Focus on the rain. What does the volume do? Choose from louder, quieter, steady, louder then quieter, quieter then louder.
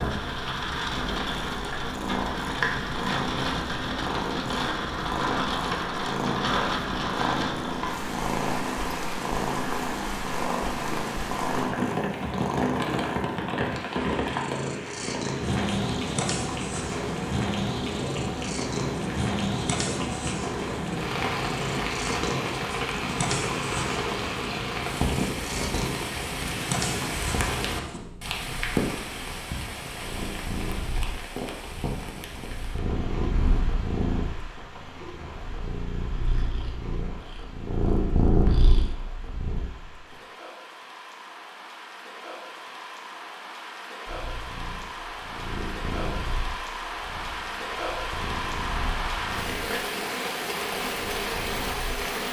quieter then louder.